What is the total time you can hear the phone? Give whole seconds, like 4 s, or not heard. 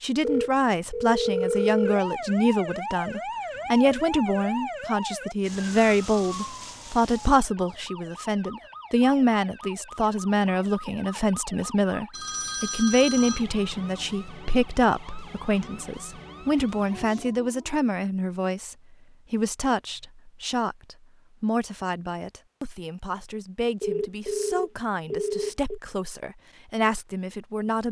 5 s.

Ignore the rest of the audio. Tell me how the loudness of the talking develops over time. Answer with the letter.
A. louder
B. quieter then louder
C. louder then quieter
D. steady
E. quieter
E.